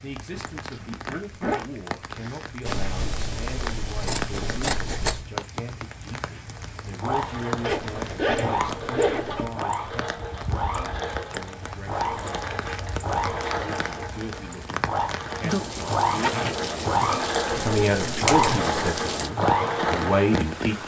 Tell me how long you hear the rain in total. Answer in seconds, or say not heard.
21 s.